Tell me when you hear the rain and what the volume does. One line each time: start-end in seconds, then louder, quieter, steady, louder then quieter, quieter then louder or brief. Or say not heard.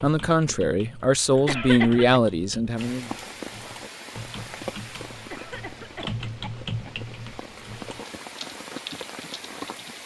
2.8-10.0 quieter then louder.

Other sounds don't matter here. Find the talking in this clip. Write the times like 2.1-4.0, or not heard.
0.0-3.1.